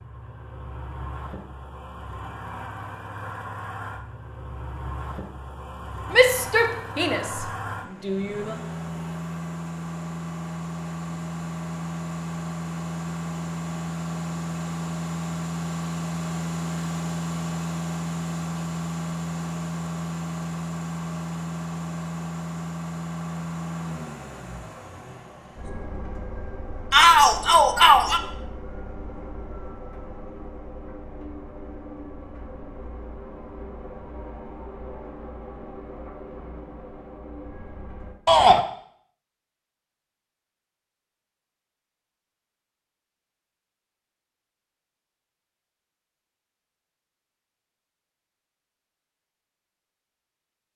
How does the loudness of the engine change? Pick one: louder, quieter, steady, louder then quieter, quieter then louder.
louder then quieter.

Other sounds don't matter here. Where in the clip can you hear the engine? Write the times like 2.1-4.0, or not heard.
0.0-38.1.